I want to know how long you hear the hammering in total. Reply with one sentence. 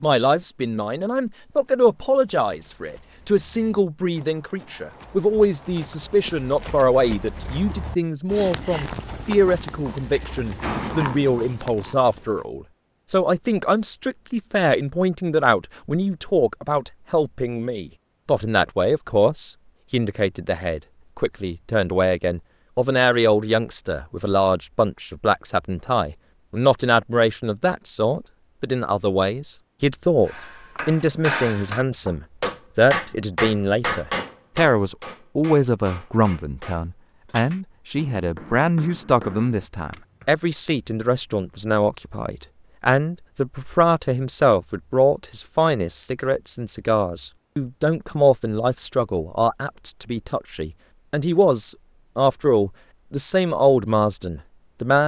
You can hear the hammering for 10 seconds altogether.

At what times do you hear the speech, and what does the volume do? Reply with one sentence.
The speech can be heard from 0.0 to 55.0 s, at a steady volume.